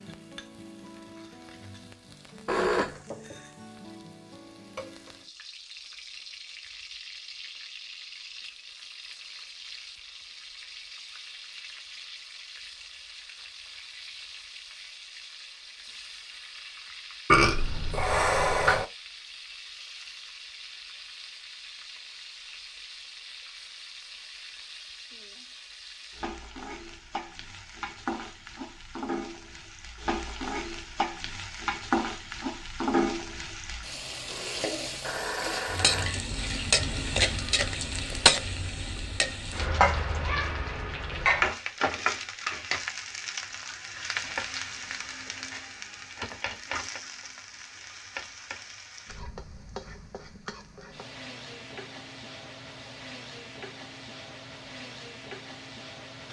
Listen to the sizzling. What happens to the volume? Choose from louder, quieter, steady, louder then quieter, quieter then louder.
louder then quieter.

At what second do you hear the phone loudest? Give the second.
3 s.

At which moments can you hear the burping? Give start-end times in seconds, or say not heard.
17.2-18.9.